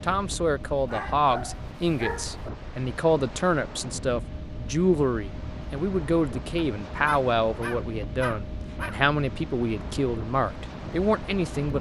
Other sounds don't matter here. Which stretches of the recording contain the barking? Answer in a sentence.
The barking can be heard from 0.8 to 2.5 s and from 6.5 to 8.9 s.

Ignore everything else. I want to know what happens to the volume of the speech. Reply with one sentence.
The volume of the speech stays about the same.